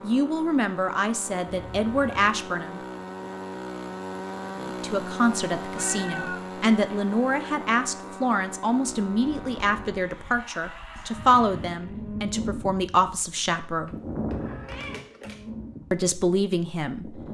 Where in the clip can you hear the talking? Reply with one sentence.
The talking can be heard from 0.0 to 2.8 s, from 4.6 to 14.0 s and from 15.9 to 17.2 s.